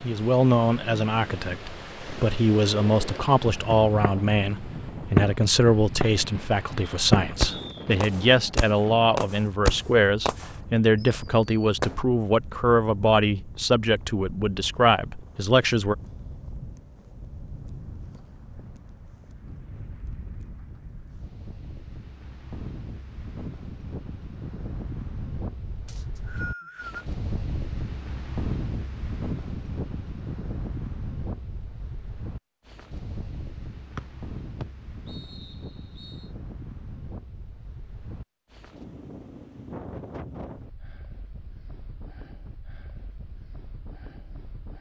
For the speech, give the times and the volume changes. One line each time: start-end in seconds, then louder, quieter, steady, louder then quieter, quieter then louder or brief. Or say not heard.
0.0-15.9 steady.